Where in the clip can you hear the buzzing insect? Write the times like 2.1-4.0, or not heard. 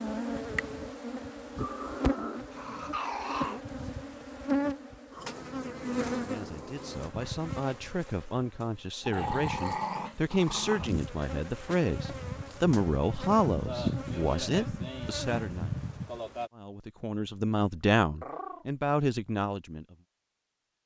0.0-16.5.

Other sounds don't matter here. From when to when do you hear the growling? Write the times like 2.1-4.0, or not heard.
1.6-3.6, 9.0-10.9, 18.2-18.6.